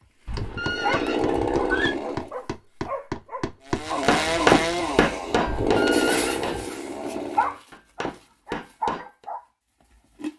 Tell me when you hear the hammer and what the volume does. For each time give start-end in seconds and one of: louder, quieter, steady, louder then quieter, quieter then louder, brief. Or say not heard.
0.3-9.2 louder then quieter.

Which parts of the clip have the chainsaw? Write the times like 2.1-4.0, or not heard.
0.0-2.4, 3.6-7.5.